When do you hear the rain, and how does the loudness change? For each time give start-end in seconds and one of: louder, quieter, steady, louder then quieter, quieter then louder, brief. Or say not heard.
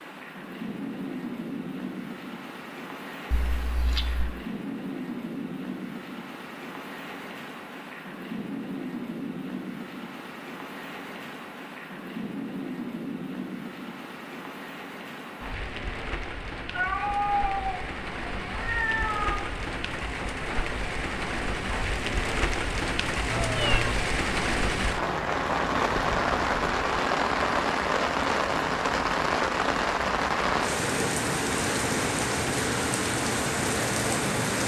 0.0-34.6 louder.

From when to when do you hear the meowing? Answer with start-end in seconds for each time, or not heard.
3.3-4.3, 16.7-19.4, 23.2-23.9.